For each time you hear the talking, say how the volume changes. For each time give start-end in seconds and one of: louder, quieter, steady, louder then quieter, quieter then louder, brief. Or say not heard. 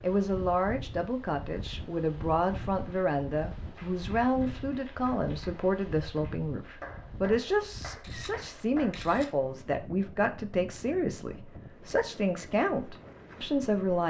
0.0-14.0 steady.